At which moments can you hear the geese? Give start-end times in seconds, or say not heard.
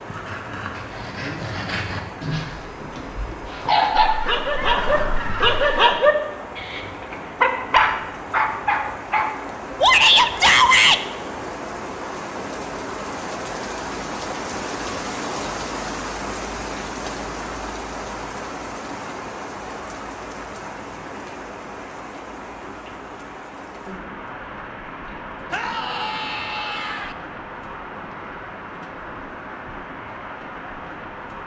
3.9-6.0.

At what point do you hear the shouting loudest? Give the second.
10 s.